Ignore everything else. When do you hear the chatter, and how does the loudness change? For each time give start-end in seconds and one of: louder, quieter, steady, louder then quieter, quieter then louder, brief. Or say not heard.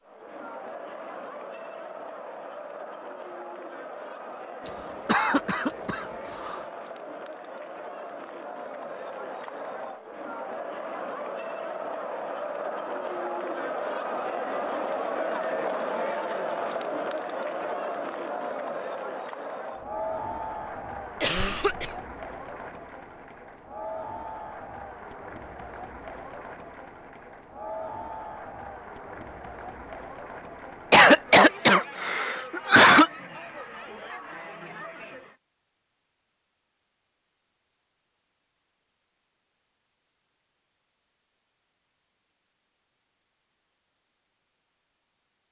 0.0-35.4 louder then quieter.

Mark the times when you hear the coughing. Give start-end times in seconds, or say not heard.
4.7-6.7, 21.2-21.9, 30.9-33.1.